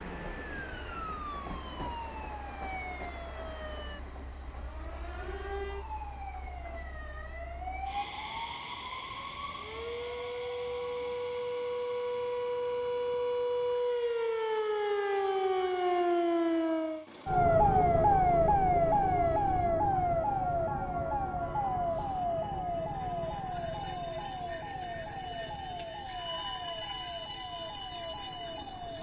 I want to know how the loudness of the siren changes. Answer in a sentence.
The loudness of the siren goes up, then down.